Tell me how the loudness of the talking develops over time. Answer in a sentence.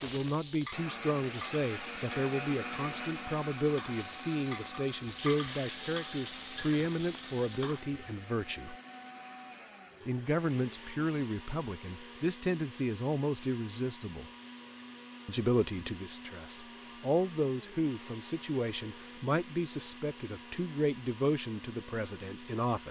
The loudness of the talking stays about the same.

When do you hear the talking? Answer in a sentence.
You can hear the talking from 0.0 to 8.8 s, from 10.1 to 14.2 s and from 15.2 to 22.8 s.